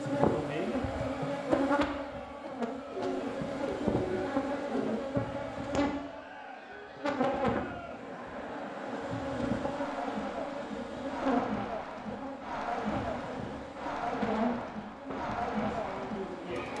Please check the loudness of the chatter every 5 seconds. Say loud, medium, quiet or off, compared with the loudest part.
medium, medium, loud, loud.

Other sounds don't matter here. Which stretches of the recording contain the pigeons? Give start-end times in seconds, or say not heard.
2.9-4.9.